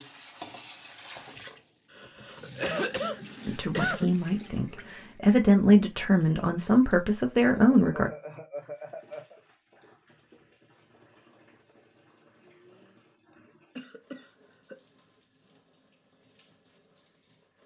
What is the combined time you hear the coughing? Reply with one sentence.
The coughing can be heard for 6 seconds in total.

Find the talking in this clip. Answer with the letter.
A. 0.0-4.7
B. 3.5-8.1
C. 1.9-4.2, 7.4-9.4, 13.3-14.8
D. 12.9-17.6
B.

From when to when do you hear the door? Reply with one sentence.
The door can't be heard in this clip.